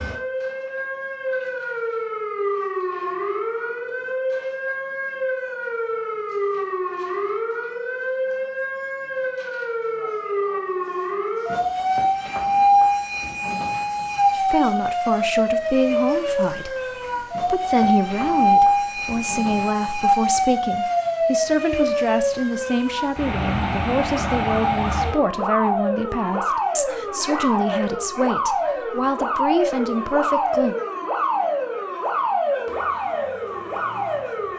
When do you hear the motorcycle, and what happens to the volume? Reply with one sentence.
The motorcycle can't be heard in this clip.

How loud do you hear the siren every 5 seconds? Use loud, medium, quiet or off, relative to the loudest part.
medium, medium, loud, loud, loud, loud, loud.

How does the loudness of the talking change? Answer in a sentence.
The volume of the talking stays about the same.